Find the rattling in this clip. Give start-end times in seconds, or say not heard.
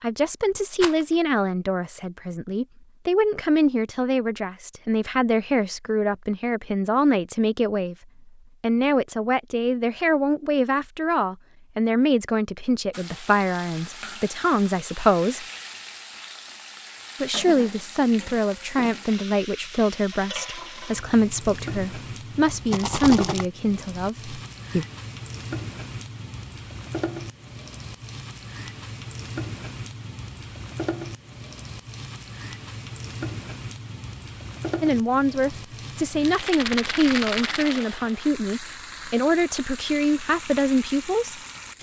0.7-1.1, 22.7-23.4, 36.2-37.9.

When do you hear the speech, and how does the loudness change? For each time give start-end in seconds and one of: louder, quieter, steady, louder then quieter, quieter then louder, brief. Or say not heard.
0.0-8.0 steady
8.6-15.4 steady
17.2-24.9 steady
34.8-41.4 steady.